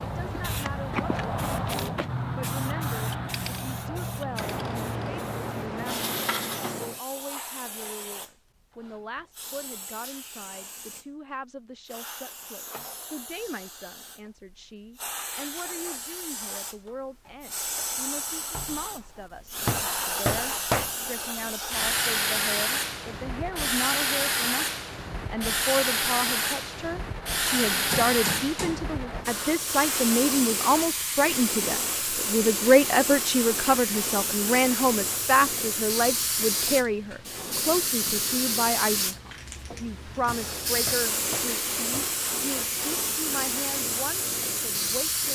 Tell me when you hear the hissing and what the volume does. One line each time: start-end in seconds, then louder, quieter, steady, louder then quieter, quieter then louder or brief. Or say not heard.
0.0-45.3 quieter then louder.